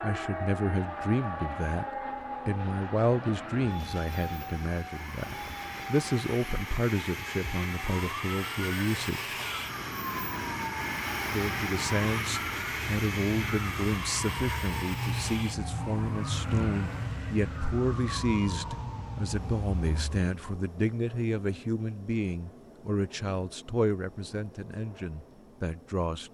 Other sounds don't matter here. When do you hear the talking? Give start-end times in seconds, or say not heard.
0.0-1.9, 2.5-9.3, 11.3-26.2.